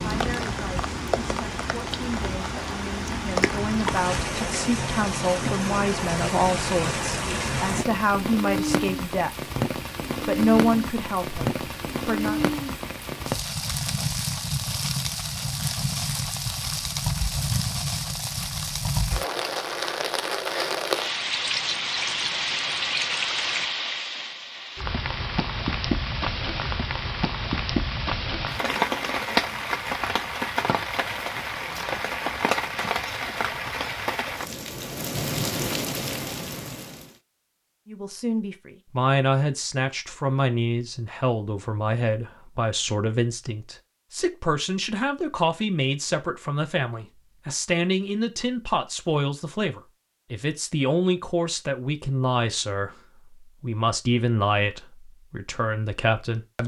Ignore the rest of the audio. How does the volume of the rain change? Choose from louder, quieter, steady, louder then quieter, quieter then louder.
steady.